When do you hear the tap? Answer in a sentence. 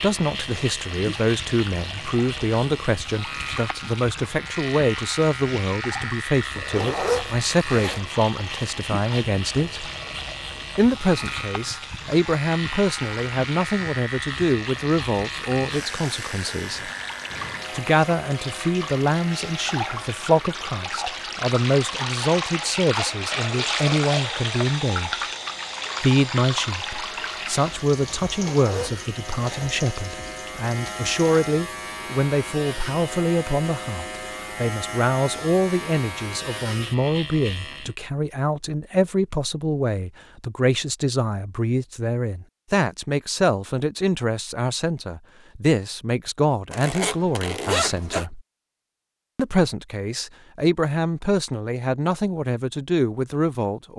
The tap can be heard from 0.1 to 31.5 s.